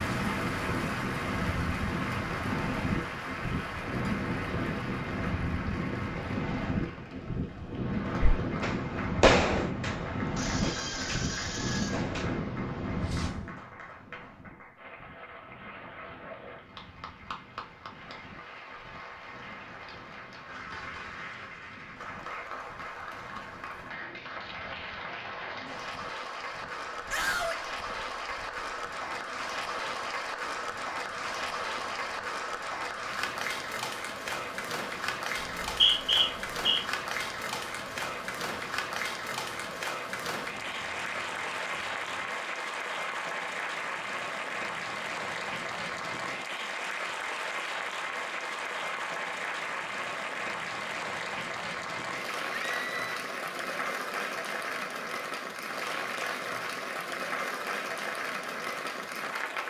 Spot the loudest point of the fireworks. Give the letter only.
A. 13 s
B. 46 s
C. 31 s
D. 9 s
D.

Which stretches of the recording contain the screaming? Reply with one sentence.
The screaming can be heard from 10.3 to 12.1 s, from 27.1 to 27.6 s and from 52.5 to 53.2 s.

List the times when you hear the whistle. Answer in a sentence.
The whistle can be heard from 35.4 to 36.8 s.